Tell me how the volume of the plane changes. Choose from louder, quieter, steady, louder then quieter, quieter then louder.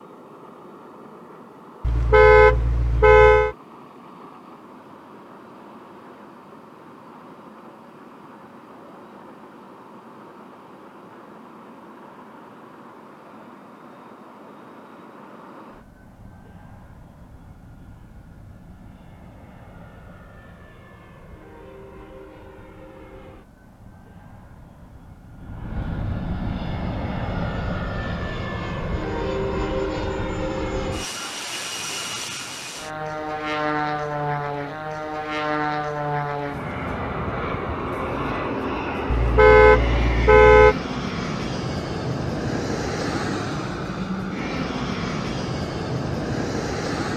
louder.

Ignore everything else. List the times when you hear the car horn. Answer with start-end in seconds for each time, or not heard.
1.8-3.5, 39.1-40.8.